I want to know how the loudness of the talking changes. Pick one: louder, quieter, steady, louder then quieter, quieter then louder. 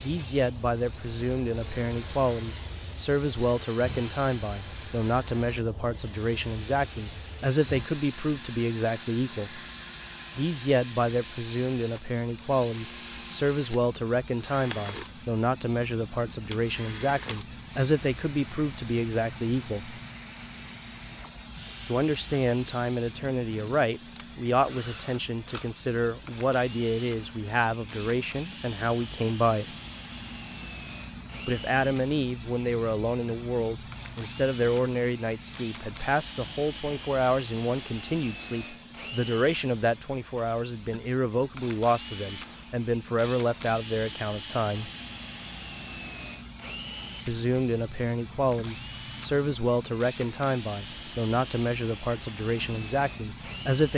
steady.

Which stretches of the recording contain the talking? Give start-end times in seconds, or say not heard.
0.0-9.6, 10.3-20.0, 21.9-29.6, 31.4-44.9, 47.2-53.9.